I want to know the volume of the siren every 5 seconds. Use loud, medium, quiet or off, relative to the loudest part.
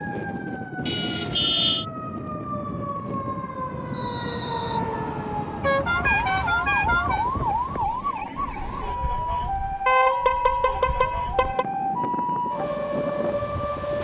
medium, loud, loud.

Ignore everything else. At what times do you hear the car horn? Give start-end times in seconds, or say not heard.
0.8-1.9, 5.6-7.2, 9.8-11.7.